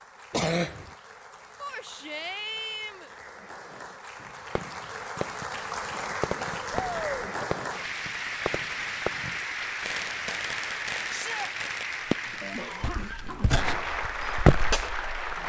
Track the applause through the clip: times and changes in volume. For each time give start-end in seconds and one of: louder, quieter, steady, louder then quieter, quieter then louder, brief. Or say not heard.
0.0-15.4 louder.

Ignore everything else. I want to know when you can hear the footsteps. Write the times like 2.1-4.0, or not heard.
12.8-15.4.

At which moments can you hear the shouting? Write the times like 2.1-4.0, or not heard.
1.6-3.1, 6.7-7.3, 11.1-11.5.